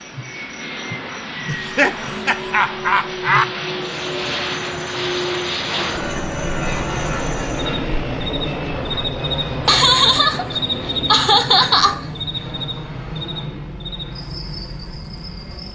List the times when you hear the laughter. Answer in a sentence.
You can hear the laughter from 1.4 to 3.5 s and from 9.7 to 12.1 s.